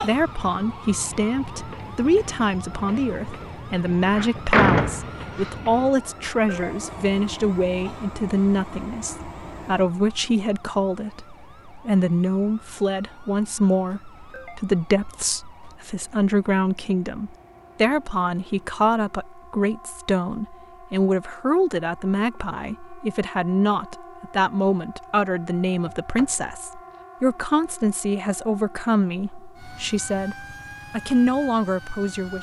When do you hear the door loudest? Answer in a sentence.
The volume of the door peaks at 5 seconds.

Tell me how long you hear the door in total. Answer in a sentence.
You can hear the door for 3 seconds altogether.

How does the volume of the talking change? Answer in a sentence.
The loudness of the talking stays about the same.